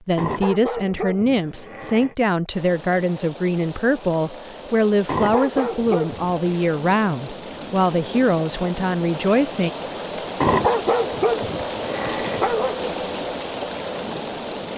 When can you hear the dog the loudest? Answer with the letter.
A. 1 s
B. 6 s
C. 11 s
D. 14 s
C.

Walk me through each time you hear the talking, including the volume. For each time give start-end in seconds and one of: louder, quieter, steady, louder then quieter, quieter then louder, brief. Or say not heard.
0.1-9.7 steady.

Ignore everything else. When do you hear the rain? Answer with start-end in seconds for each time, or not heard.
2.5-14.7.